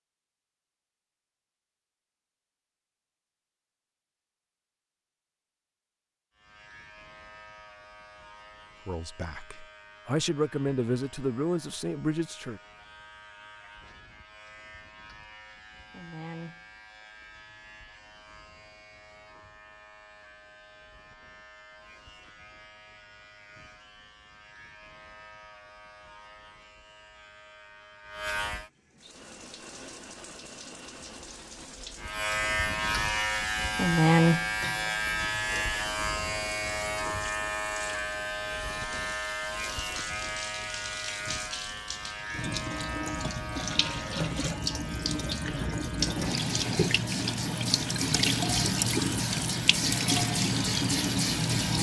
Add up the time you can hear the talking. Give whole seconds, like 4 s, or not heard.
4 s.